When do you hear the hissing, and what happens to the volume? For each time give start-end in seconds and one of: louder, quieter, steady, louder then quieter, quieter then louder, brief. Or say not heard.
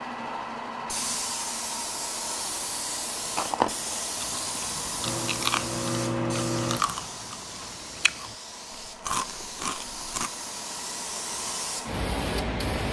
0.0-12.8 quieter then louder.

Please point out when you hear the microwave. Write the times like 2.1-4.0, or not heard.
5.0-6.8.